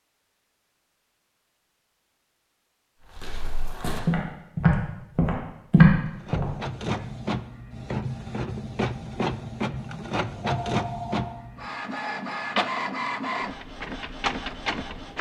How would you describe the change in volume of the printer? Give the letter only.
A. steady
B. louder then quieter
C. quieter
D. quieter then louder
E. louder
A.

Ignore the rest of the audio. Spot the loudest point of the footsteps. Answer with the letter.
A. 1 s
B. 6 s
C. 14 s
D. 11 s
B.